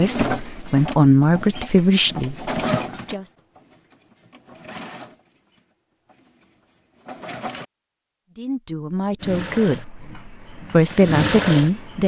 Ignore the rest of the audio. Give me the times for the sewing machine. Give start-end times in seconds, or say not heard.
0.0-7.7, 9.2-12.0.